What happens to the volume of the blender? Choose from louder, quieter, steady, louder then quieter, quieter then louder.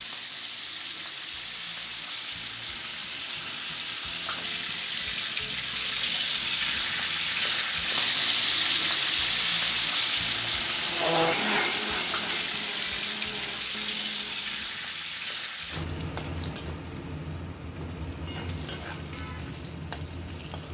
quieter.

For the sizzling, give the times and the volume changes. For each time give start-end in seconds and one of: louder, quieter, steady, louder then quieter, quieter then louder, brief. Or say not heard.
0.0-20.6 louder then quieter.